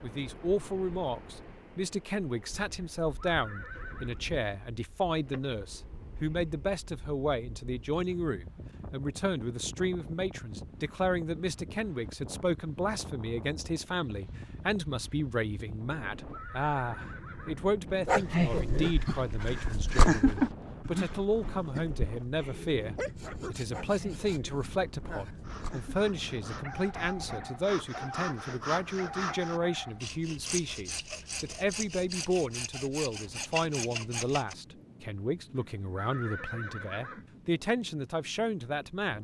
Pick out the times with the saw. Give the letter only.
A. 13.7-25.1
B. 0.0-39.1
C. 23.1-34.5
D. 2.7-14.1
C.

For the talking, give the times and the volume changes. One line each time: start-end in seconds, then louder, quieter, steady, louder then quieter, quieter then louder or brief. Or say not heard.
0.0-39.1 steady.